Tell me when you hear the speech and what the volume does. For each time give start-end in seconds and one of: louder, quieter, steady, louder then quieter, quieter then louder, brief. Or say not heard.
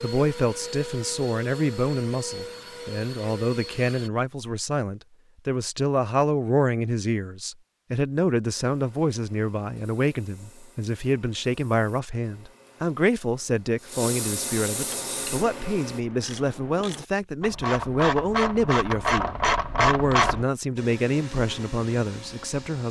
0.0-22.8 steady.